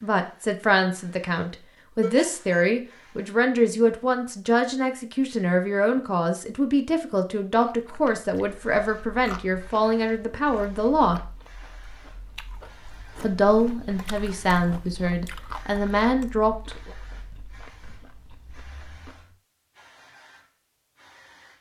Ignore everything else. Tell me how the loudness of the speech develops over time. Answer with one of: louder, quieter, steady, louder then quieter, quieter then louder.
steady.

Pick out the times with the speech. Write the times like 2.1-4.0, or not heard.
0.0-11.2, 13.2-16.9.